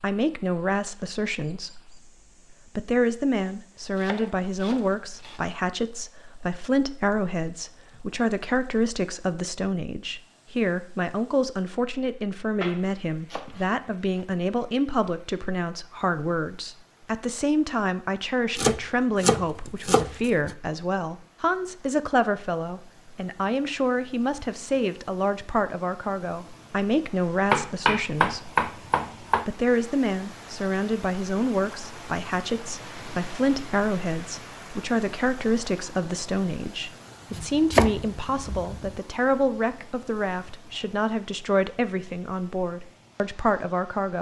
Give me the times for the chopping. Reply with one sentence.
The chopping can be heard from 3.5 to 5.5 s, from 12.6 to 14.2 s, from 18.6 to 20.6 s, from 27.5 to 29.4 s and from 37.3 to 39.0 s.